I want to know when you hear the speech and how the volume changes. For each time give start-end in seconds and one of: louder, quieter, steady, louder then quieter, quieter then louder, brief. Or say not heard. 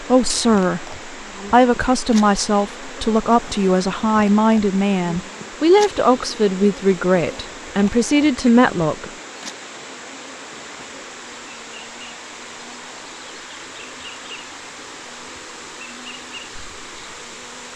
0.0-9.1 steady.